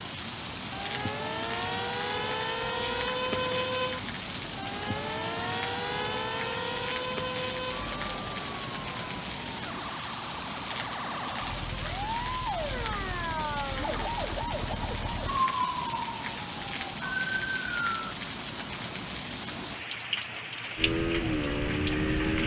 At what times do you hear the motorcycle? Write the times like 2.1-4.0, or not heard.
20.8-22.4.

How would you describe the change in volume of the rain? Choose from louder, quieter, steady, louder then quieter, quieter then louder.
steady.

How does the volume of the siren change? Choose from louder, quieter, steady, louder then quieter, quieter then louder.
quieter then louder.